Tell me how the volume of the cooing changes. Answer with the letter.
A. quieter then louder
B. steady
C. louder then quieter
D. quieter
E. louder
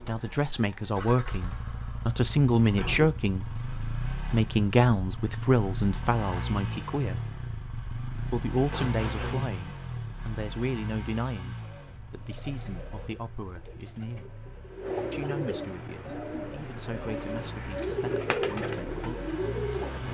E.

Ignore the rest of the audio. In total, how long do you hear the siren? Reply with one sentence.
The siren can't be heard in this clip.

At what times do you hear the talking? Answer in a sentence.
You can hear the talking from 0.0 to 7.2 s, from 8.2 to 14.2 s and from 15.1 to 20.0 s.